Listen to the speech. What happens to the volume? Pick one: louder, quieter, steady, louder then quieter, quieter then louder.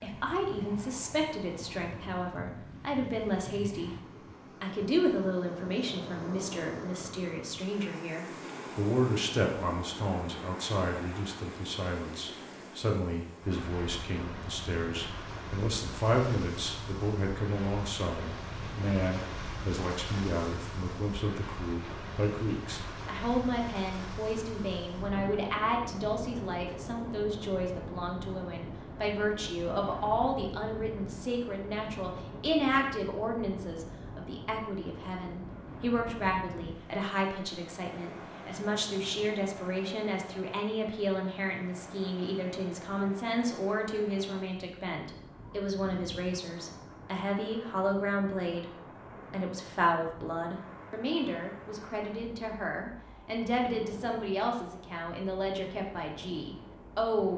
steady.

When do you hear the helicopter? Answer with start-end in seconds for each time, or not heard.
not heard.